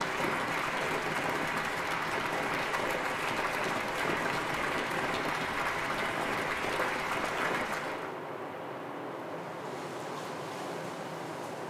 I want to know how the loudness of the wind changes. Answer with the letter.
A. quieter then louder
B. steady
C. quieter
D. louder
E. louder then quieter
B.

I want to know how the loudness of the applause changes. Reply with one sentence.
The loudness of the applause stays about the same.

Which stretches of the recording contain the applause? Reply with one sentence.
You can hear the applause from 0.0 to 8.2 s.